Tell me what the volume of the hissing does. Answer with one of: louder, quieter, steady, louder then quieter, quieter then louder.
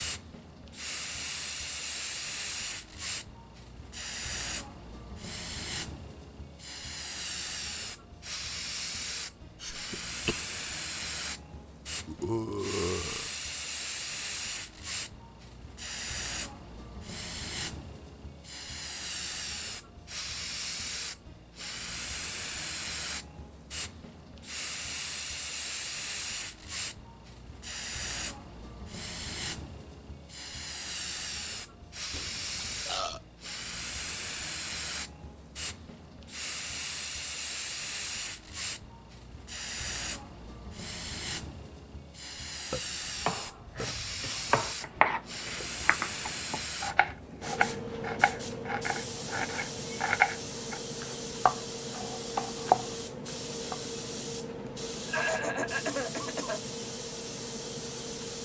steady.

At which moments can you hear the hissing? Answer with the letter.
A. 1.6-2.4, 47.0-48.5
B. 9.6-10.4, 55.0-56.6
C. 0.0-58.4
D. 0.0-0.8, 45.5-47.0
C.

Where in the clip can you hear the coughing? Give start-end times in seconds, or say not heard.
9.6-10.4, 55.0-56.6.